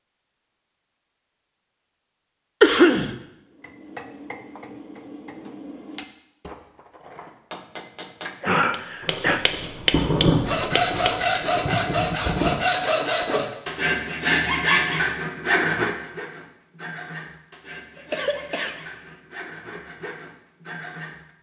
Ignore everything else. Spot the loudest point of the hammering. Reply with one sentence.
The loudest moment of the hammering is at 10 seconds.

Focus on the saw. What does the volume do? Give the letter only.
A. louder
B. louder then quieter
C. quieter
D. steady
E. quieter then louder
C.